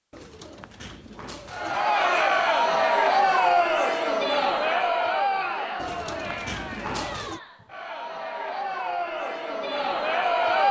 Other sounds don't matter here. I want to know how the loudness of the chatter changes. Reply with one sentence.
The loudness of the chatter goes down, then up.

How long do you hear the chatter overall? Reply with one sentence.
You can hear the chatter for 9 seconds altogether.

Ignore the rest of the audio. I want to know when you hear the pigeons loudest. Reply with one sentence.
The volume of the pigeons peaks at 7 seconds.